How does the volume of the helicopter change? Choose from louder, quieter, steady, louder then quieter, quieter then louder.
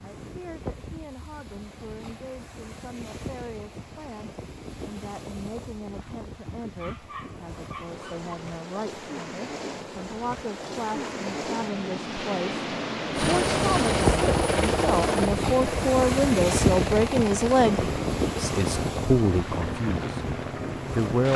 quieter.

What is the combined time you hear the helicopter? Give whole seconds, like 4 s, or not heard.
8 s.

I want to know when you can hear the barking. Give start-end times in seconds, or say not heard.
6.8-8.3.